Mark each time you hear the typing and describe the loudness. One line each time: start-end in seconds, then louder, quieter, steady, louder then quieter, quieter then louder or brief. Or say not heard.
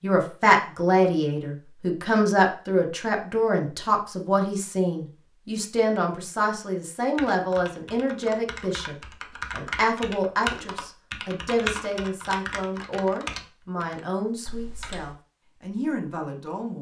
7.2-15.2 louder then quieter.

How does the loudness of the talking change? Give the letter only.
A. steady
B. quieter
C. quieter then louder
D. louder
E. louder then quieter
B.